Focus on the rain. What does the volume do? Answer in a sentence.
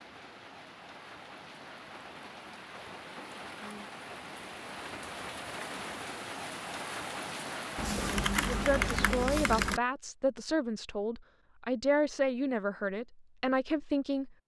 The loudness of the rain goes up.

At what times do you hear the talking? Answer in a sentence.
You can hear the talking from 8.4 to 14.3 s.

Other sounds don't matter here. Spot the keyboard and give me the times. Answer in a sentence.
You can hear the keyboard from 7.8 to 9.8 s.